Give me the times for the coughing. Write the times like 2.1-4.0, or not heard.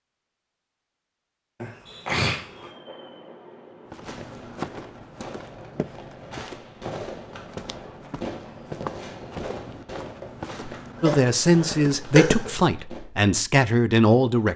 1.6-2.7, 11.0-12.5.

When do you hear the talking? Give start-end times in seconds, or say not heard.
11.0-14.5.